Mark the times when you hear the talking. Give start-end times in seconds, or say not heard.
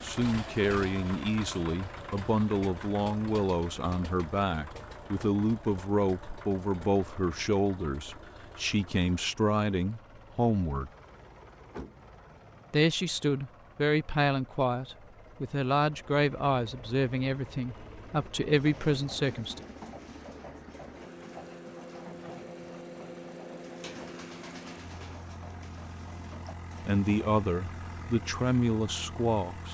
0.0-10.9, 12.7-19.6, 26.8-29.6.